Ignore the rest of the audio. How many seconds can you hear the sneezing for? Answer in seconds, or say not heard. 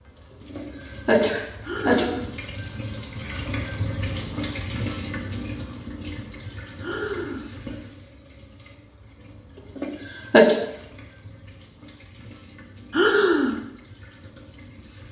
3 s.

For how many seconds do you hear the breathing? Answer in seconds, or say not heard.
2 s.